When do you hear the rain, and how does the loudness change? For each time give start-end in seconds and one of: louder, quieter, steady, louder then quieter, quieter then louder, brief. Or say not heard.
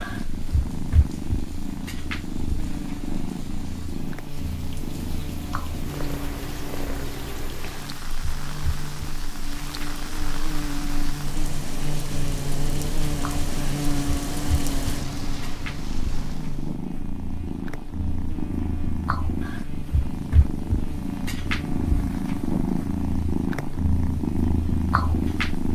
0.0-16.8 louder.